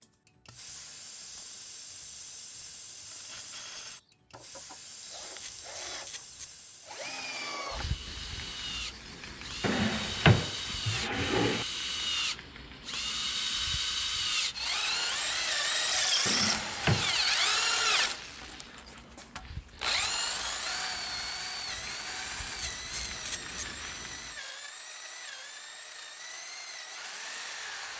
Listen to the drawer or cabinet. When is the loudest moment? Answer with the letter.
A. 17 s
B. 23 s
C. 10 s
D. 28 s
C.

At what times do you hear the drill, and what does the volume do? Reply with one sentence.
The drill can be heard from 3.9 to 27.9 s, getting louder then quieter.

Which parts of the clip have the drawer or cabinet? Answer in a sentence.
You can hear the drawer or cabinet from 9.6 to 11.7 s and from 16.2 to 17.1 s.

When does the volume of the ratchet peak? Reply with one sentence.
The volume of the ratchet peaks at 23 seconds.